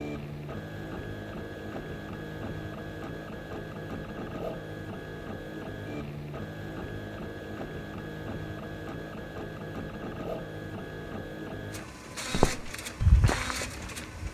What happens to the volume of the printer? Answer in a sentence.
The volume of the printer stays about the same.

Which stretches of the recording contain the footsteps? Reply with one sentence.
You can hear the footsteps from 12.3 to 14.2 s.